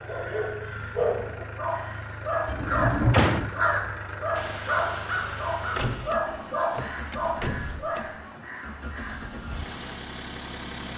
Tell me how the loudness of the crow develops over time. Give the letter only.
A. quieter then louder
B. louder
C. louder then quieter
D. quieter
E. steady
C.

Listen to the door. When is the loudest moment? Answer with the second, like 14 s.
3 s.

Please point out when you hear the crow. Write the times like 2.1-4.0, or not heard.
0.0-10.1.